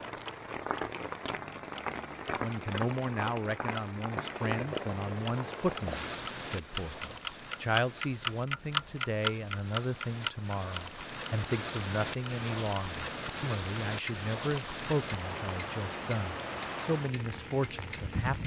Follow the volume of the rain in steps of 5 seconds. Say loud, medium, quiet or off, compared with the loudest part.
loud, medium, loud, loud.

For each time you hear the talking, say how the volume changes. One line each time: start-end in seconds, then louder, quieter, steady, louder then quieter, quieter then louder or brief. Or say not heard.
2.4-18.4 steady.